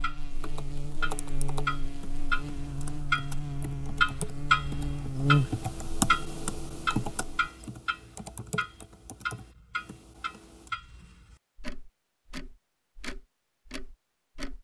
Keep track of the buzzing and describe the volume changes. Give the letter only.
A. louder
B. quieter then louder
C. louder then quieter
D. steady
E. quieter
C.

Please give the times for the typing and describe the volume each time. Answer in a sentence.
You can hear the typing from 0.3 to 10.7 s, getting louder then quieter.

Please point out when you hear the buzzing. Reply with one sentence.
You can hear the buzzing from 0.0 to 7.5 s.